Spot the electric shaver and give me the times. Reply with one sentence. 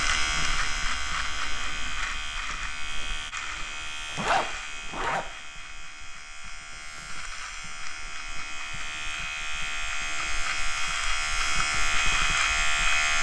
You can hear the electric shaver from 0.0 to 13.1 s.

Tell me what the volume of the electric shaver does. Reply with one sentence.
The loudness of the electric shaver goes down, then up.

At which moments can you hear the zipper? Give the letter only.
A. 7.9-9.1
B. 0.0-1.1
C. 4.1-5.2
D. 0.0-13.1
C.